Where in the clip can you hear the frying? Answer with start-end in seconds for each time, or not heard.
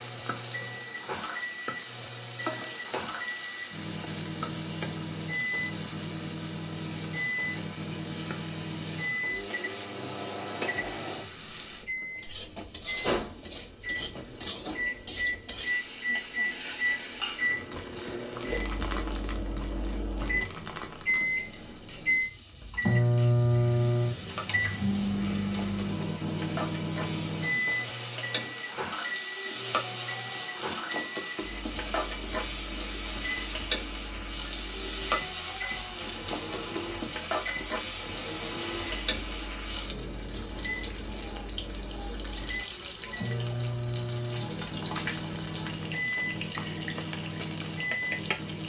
0.0-48.6.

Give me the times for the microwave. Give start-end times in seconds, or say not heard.
0.0-48.6.